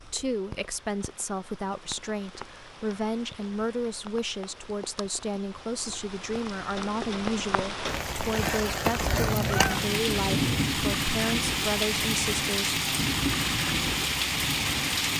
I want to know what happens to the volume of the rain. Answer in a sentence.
The volume of the rain goes up.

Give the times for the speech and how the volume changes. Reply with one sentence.
The speech can be heard from 0.0 to 12.8 s, at a steady volume.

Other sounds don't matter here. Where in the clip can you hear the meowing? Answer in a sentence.
You can hear the meowing from 9.1 to 10.1 s.